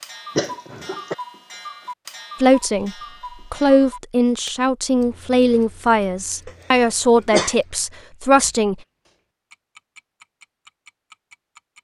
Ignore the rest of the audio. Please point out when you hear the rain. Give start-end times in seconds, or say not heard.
not heard.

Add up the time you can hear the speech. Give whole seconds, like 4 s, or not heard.
6 s.